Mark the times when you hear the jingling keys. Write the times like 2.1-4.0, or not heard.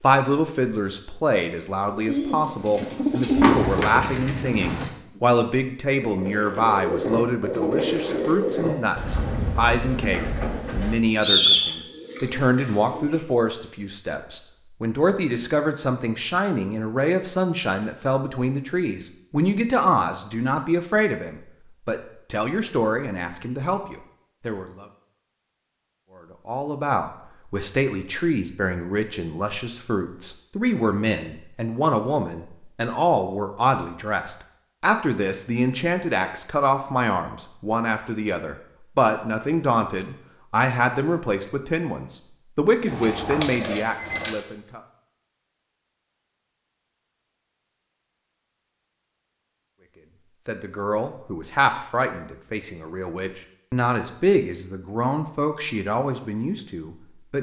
3.4-4.9, 42.9-44.3.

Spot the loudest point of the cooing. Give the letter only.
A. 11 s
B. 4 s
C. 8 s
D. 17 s
A.